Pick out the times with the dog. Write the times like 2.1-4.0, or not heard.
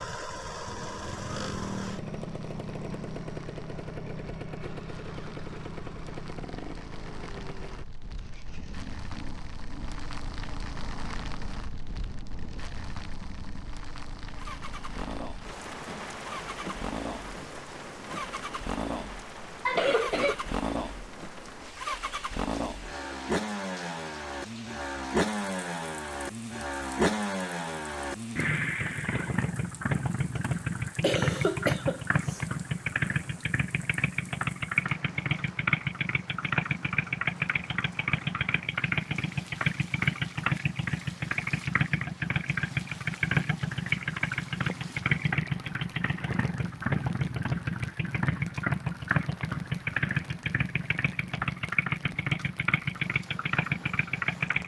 not heard.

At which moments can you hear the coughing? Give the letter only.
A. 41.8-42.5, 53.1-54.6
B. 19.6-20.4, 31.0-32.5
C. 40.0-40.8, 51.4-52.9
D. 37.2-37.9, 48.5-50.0
B.